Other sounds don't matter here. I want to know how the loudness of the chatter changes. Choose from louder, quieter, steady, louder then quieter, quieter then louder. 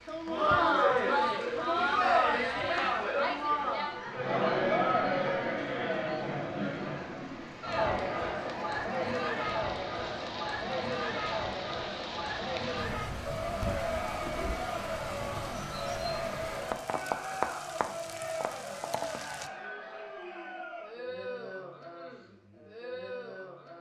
quieter.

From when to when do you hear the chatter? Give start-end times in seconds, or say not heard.
0.1-23.7.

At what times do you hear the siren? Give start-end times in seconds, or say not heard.
not heard.